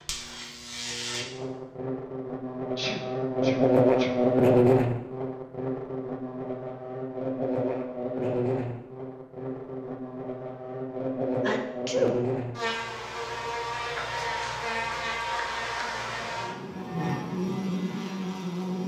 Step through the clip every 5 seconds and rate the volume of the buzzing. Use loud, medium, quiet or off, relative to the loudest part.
loud, medium, medium, medium.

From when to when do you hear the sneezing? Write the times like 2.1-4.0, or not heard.
2.8-4.2, 11.4-12.2.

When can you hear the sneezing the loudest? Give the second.
12 s.